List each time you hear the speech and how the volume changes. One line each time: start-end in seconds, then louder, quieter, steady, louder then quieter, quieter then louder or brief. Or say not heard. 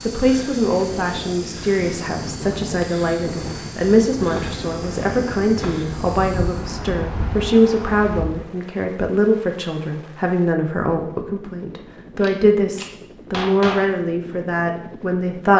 0.0-15.5 steady.